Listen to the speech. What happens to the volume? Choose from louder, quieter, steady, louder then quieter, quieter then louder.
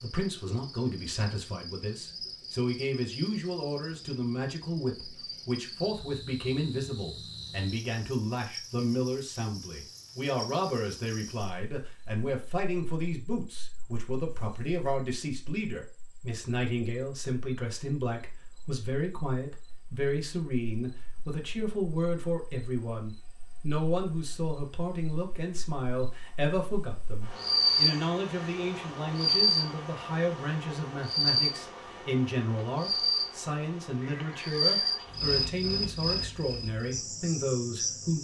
steady.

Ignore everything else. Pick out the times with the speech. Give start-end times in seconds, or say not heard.
0.0-38.1.